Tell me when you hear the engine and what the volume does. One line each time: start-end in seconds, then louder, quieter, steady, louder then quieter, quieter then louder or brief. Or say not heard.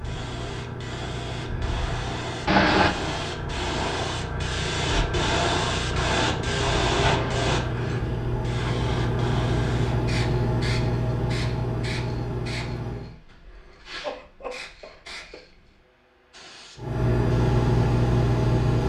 0.0-13.2 louder
16.8-18.8 brief.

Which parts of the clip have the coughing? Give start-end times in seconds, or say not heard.
2.5-2.9, 6.5-7.7, 14.0-15.4.